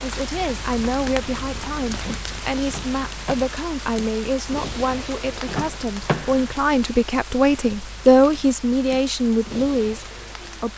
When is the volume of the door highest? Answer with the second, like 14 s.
6 s.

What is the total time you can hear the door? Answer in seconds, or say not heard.
2 s.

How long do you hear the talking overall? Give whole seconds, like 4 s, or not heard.
11 s.